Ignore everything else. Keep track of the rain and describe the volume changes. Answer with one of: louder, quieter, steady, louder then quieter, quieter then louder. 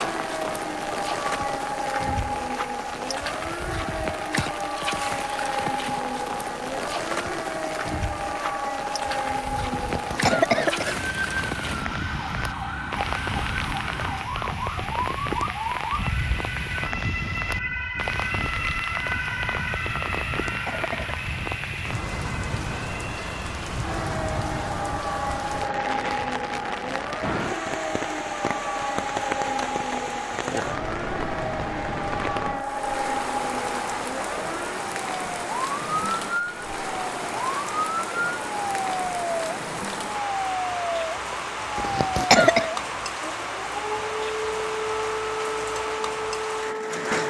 steady.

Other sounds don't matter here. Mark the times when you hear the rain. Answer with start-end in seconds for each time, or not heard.
0.0-47.2.